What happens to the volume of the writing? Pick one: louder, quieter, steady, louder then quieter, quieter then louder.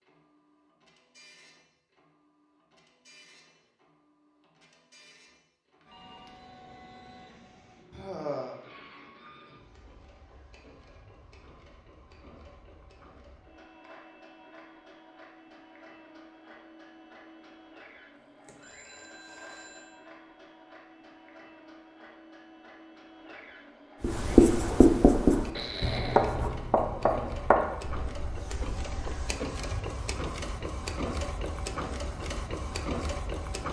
quieter.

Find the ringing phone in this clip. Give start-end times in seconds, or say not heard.
5.8-6.3, 18.6-20.0.